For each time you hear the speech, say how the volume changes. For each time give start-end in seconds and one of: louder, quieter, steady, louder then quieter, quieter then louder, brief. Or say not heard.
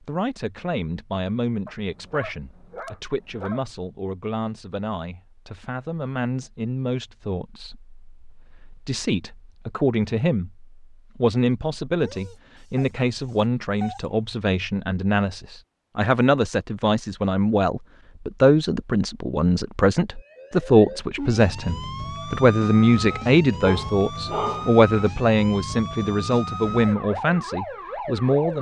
0.1-28.5 louder.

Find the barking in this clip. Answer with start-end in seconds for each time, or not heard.
1.6-3.7, 12.0-14.0, 23.6-24.7.